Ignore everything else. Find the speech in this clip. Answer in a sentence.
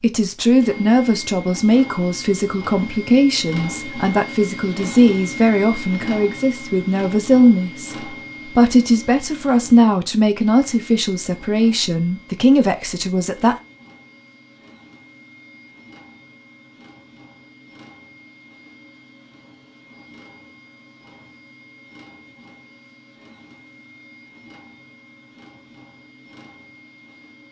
You can hear the speech from 0.0 to 13.6 s.